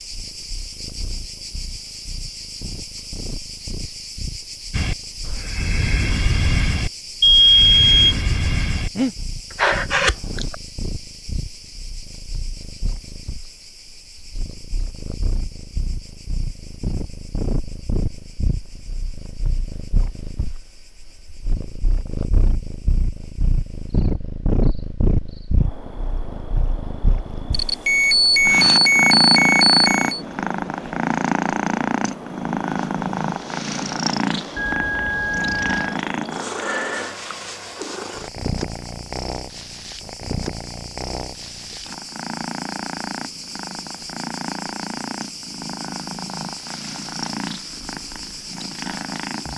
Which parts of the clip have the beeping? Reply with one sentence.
The beeping can be heard from 7.2 to 8.2 s, from 27.5 to 30.2 s and from 34.5 to 36.0 s.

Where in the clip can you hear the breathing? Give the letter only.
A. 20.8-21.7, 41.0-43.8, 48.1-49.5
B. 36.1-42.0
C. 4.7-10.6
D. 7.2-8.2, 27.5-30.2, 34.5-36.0
C.